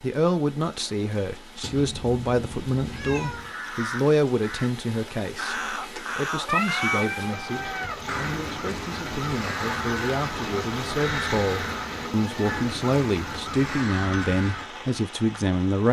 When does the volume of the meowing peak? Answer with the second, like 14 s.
7 s.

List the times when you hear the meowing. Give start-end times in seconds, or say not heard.
1.6-3.5, 6.0-8.0, 12.0-12.7.